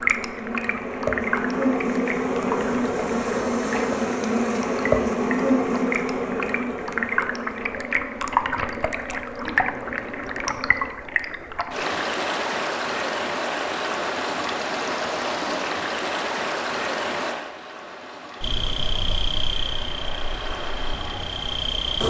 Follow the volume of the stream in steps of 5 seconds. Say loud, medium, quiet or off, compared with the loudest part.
loud, loud, loud, loud, medium.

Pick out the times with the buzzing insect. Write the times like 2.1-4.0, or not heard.
0.0-10.9, 18.4-22.0.